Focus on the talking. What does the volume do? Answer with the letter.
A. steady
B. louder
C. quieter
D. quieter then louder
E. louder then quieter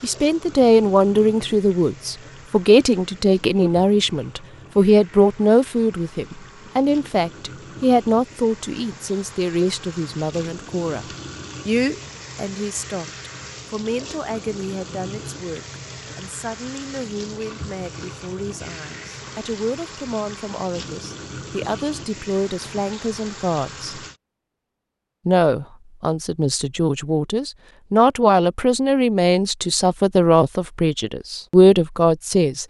D.